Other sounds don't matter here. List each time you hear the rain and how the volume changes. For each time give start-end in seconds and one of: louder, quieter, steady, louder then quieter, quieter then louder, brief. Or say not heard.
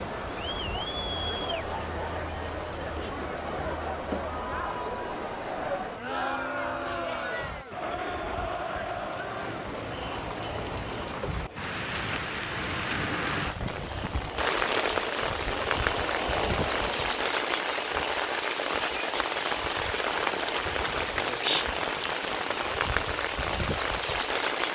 0.0-24.6 louder.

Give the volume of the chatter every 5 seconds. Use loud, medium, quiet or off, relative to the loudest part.
loud, loud, medium, loud, off.